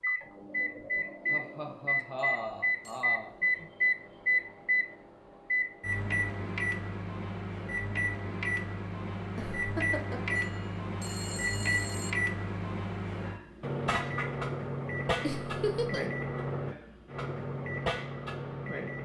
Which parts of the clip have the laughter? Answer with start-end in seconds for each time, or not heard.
1.3-3.7, 9.3-10.3, 15.2-16.1.